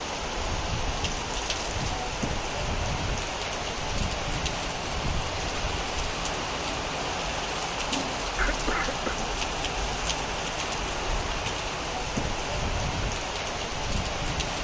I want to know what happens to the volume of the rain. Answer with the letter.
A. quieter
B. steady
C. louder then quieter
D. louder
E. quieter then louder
B.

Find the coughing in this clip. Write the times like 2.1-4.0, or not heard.
8.3-9.2.